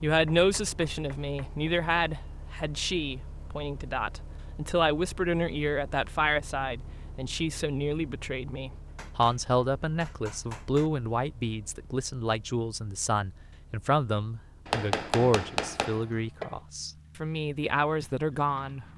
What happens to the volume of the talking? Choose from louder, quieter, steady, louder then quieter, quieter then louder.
steady.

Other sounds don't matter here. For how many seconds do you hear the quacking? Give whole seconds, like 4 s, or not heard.
not heard.